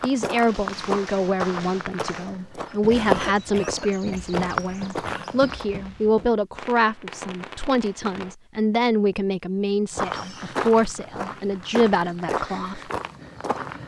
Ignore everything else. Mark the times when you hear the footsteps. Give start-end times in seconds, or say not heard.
0.0-5.7, 9.9-13.8.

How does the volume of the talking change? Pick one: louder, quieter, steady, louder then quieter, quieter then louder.
steady.